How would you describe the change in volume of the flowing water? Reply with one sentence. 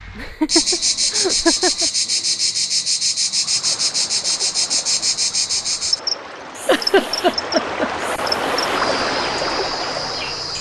The loudness of the flowing water goes up.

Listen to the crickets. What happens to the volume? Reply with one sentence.
The volume of the crickets goes down.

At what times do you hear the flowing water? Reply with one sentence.
The flowing water can be heard from 3.4 to 10.5 s.